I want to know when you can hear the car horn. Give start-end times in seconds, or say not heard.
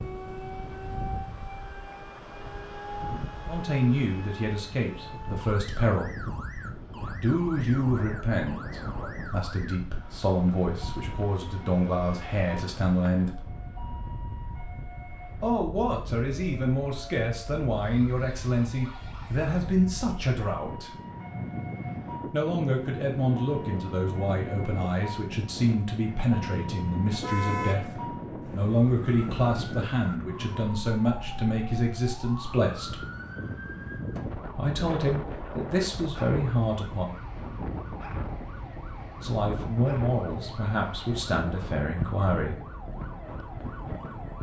27.2-27.9.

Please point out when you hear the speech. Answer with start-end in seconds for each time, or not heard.
3.5-6.1, 7.2-13.5, 15.4-20.9, 22.3-33.0, 34.5-37.1, 39.2-42.6.